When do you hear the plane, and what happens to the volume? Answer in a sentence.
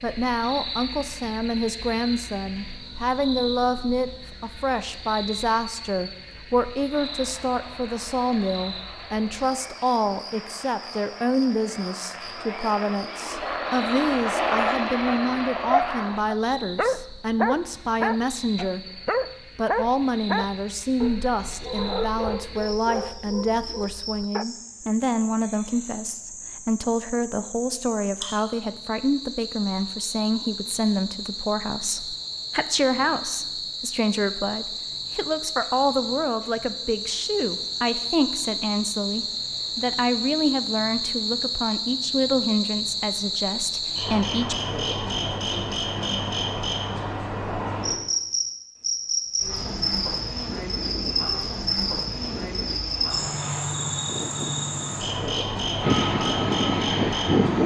The plane can be heard from 6.9 to 16.2 s, getting louder; and from 49.5 to 57.6 s, getting louder.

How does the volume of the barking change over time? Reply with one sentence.
The loudness of the barking goes down.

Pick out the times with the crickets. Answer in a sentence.
You can hear the crickets from 0.0 to 57.6 s.